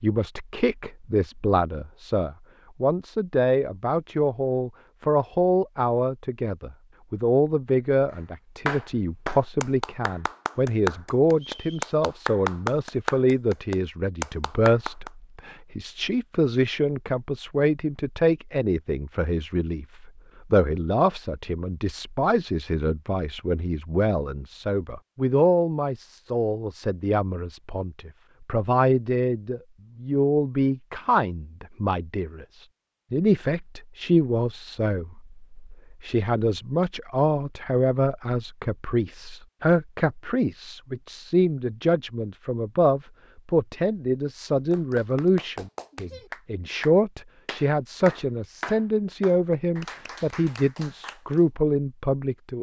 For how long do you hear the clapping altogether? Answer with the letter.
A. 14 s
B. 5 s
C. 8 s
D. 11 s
A.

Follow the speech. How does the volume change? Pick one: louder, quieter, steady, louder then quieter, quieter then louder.
steady.